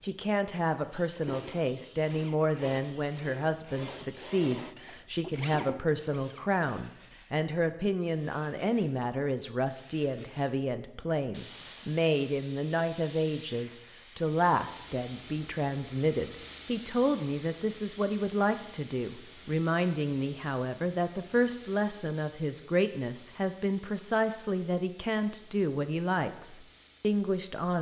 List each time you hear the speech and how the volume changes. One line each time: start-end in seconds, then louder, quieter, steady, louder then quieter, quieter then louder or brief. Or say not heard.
0.0-27.7 steady.